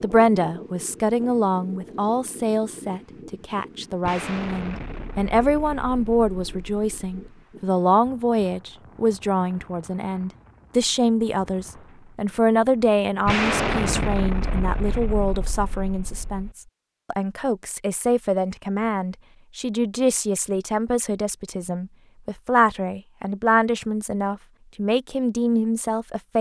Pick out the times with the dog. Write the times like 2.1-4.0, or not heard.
not heard.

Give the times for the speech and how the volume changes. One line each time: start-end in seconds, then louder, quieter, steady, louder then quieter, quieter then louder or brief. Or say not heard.
0.0-26.3 steady.